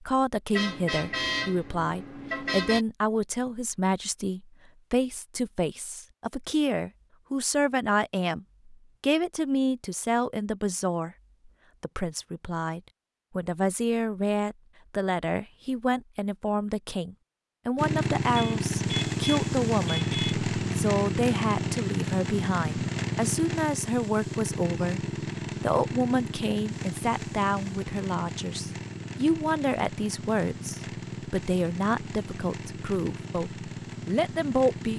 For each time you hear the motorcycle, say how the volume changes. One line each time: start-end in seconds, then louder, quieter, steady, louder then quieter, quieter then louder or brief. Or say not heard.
17.8-34.9 quieter.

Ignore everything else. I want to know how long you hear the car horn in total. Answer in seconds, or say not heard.
4 s.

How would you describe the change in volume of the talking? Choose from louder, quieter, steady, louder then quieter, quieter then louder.
steady.